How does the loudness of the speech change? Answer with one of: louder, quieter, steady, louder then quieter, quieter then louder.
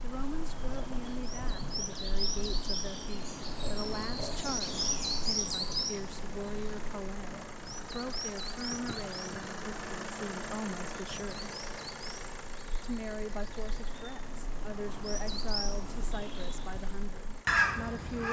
steady.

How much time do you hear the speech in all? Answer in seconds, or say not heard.
17 s.